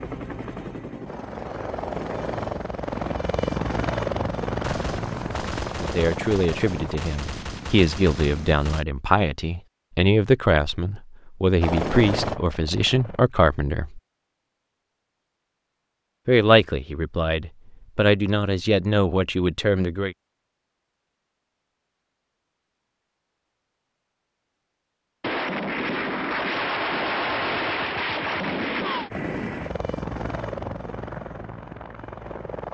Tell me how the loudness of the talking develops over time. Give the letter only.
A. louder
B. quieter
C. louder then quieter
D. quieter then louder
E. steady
E.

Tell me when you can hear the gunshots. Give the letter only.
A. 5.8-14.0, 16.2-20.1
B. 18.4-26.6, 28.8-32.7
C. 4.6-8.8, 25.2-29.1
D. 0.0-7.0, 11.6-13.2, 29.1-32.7
C.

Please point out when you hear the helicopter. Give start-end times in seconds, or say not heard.
0.0-7.0, 11.6-13.2, 29.1-32.7.